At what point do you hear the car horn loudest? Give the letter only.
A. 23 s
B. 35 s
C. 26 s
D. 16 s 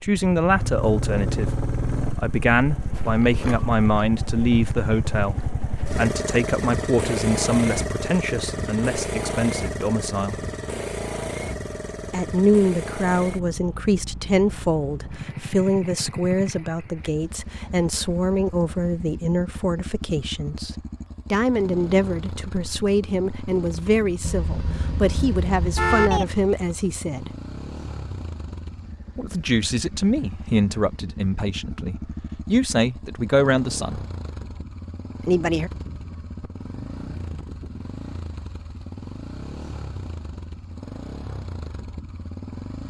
C.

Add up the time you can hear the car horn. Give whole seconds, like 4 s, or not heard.
2 s.